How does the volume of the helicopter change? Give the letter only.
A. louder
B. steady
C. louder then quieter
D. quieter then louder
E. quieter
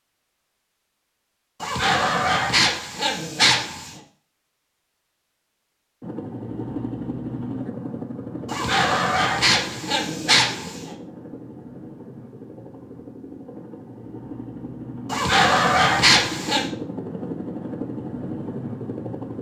D.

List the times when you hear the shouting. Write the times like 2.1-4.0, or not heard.
not heard.